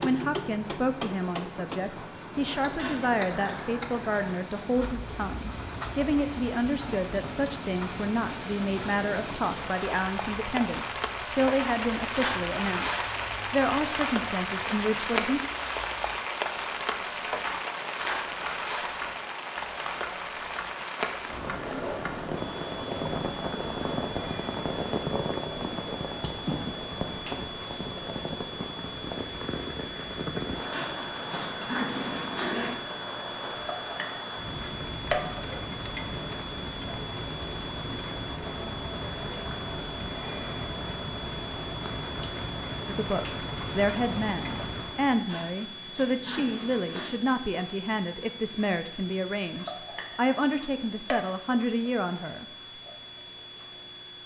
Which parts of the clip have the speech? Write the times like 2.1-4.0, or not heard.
0.0-15.4, 42.9-52.5.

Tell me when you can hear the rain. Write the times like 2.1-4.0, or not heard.
0.0-45.2.